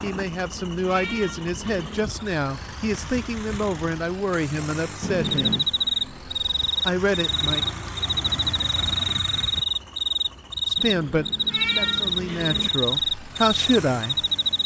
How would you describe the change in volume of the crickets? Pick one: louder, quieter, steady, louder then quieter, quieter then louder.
steady.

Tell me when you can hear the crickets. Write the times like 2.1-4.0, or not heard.
5.2-14.6.